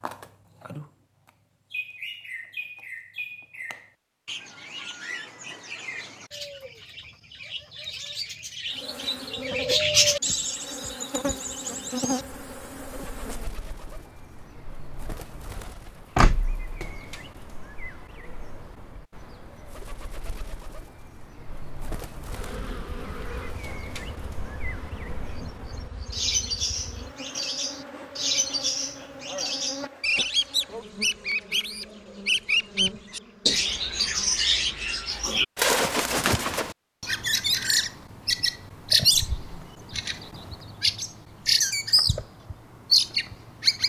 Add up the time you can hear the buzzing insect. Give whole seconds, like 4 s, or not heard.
17 s.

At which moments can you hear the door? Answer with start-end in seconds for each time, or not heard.
16.1-16.9.